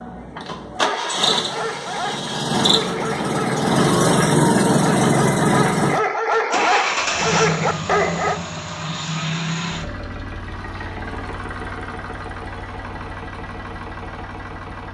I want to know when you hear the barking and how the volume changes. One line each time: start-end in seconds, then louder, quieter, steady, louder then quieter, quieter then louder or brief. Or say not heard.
0.8-8.4 louder.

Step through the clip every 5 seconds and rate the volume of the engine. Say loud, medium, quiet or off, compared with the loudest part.
loud, loud, quiet.